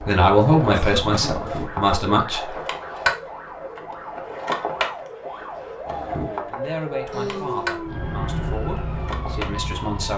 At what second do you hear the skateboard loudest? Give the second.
3 s.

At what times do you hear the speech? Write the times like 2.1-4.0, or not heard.
0.1-2.4, 6.2-10.1.